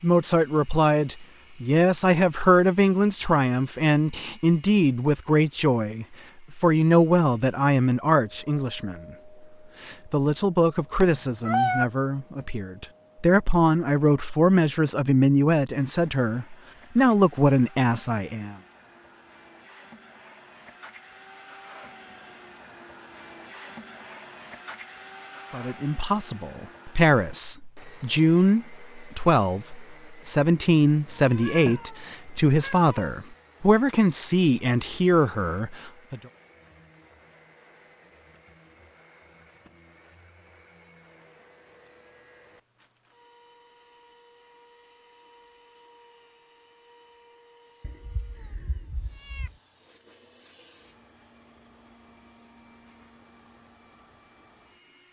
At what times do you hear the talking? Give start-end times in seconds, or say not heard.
0.0-9.2, 9.8-18.6, 25.5-36.2.